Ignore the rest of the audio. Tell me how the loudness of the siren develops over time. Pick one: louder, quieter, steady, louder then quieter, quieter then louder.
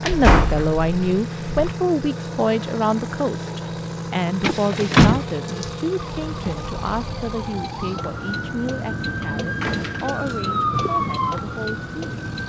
louder.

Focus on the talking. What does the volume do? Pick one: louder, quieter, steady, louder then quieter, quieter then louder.
quieter.